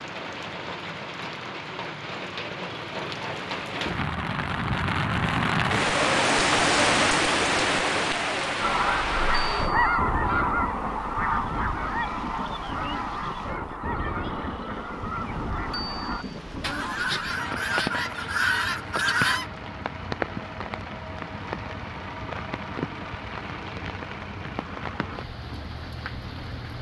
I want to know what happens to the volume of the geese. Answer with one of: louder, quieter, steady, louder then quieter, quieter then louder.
quieter then louder.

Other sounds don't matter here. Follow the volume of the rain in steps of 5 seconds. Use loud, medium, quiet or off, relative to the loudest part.
medium, loud, medium, medium, medium, quiet.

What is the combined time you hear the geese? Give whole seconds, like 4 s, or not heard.
11 s.